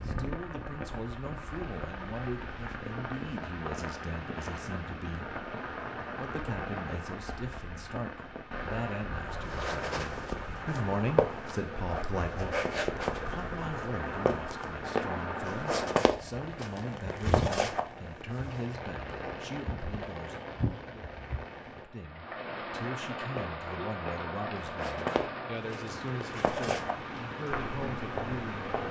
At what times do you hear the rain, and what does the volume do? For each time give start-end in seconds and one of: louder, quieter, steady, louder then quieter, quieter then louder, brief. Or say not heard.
0.0-28.8 steady.